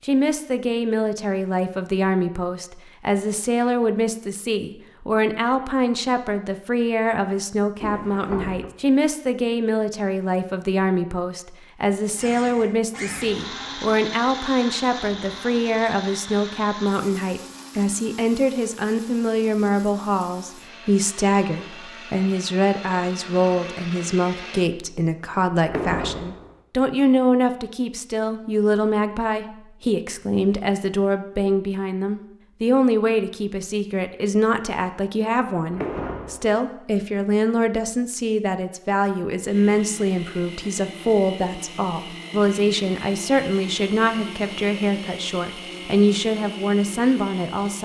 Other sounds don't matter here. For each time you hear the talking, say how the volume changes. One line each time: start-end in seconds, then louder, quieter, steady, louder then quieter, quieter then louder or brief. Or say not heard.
0.1-47.8 steady.